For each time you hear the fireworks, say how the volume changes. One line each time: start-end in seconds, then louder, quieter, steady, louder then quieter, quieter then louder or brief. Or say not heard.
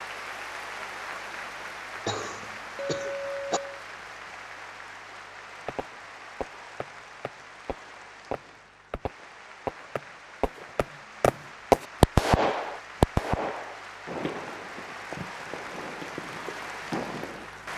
5.7-17.5 louder then quieter.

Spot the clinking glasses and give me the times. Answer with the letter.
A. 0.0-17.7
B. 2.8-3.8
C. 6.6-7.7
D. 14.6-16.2
B.